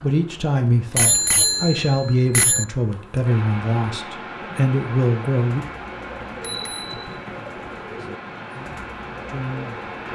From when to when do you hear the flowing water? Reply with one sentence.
The flowing water can be heard from 3.2 to 10.0 s.